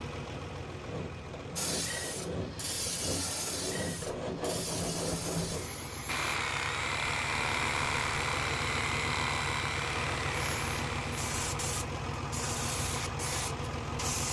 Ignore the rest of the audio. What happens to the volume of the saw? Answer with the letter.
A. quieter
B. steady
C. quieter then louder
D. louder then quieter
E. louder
E.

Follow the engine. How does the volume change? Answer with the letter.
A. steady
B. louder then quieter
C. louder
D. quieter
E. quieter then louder
C.